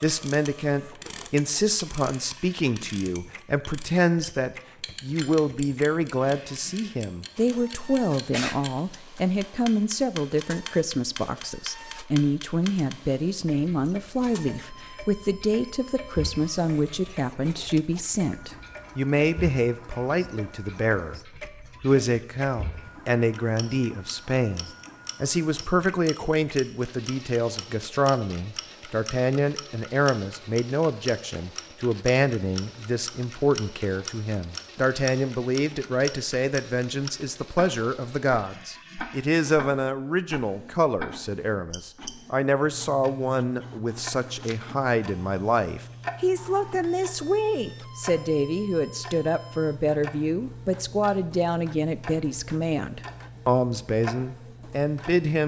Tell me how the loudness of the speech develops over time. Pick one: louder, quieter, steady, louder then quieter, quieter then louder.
steady.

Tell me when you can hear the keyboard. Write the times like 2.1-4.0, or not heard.
not heard.